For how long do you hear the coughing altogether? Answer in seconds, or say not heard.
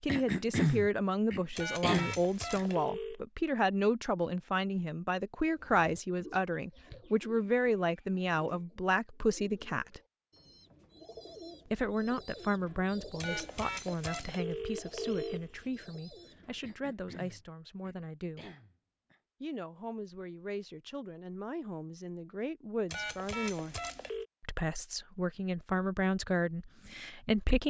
5 s.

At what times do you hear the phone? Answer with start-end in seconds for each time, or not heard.
1.6-3.2, 13.2-15.7, 22.9-24.2.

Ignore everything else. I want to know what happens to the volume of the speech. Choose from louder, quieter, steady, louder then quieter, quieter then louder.
quieter then louder.